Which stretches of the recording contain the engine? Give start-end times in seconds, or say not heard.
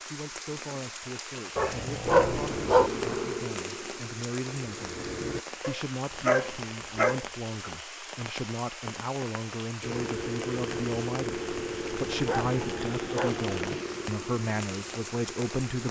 2.0-5.5, 9.8-15.8.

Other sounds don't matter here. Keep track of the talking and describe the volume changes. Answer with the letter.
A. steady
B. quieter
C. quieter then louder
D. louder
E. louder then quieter
D.